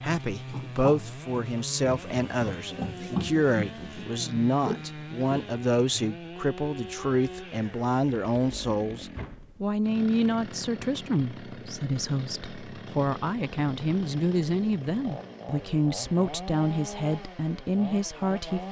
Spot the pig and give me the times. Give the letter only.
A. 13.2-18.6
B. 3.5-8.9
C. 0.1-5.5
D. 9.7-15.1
C.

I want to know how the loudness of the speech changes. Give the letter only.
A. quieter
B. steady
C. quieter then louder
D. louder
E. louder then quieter
B.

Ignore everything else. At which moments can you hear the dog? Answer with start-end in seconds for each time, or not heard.
not heard.